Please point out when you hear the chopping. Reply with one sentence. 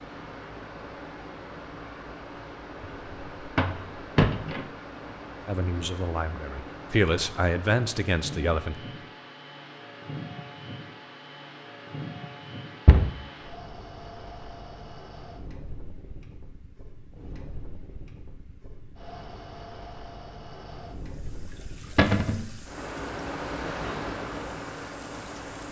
You can't hear the chopping here.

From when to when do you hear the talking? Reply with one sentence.
You can hear the talking from 5.5 to 8.8 s.